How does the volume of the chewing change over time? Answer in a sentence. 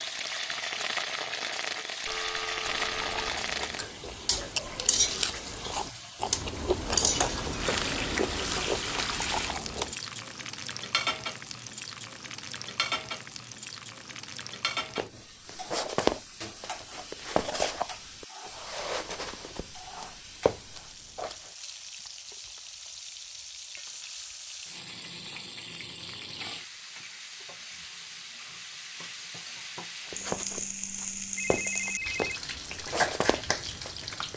The volume of the chewing goes up.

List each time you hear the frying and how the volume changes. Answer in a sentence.
The frying can be heard from 0.0 to 34.3 s, getting quieter then louder.